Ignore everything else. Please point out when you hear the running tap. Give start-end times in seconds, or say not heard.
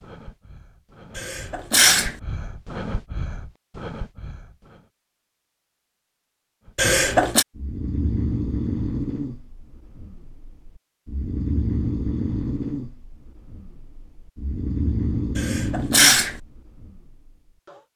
not heard.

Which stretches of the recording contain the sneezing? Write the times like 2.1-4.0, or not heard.
1.1-2.1, 6.8-7.5, 15.3-16.4.